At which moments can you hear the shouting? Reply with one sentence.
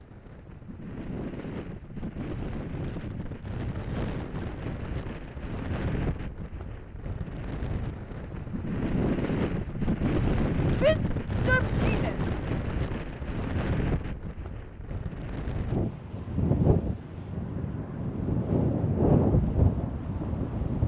The shouting can be heard from 10.7 to 12.2 s.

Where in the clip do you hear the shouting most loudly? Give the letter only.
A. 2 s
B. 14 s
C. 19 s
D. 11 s
D.